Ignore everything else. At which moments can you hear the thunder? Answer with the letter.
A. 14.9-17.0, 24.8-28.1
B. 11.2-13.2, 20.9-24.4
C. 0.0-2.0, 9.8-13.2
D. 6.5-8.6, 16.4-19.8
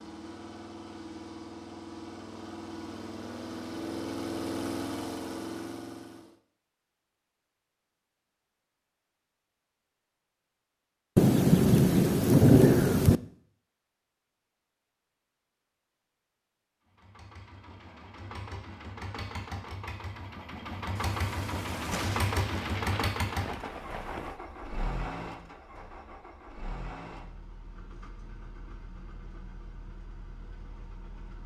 B.